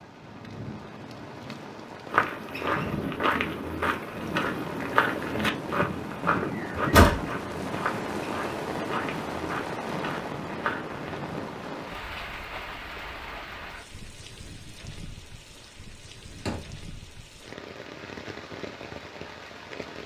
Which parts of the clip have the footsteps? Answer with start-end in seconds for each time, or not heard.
2.1-11.2.